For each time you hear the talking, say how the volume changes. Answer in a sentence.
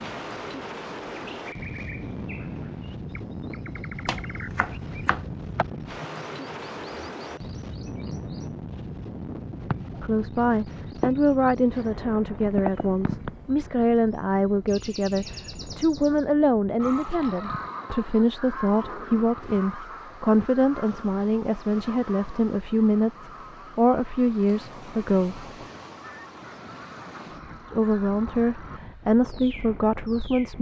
You can hear the talking from 10.0 to 25.4 s, at a steady volume; and briefly from 27.7 to 30.5 s.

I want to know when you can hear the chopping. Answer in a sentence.
The chopping can be heard from 4.0 to 5.7 s.